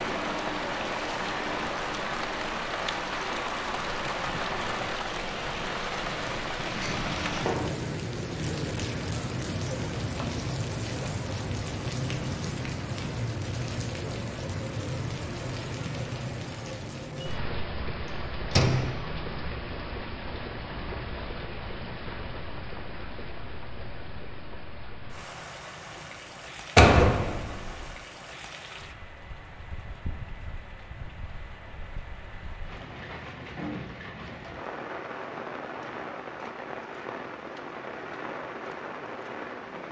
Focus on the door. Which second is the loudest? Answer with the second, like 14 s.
27 s.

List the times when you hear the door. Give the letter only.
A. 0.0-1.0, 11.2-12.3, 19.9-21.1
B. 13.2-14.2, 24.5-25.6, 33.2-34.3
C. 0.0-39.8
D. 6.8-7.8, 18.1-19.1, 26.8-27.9
D.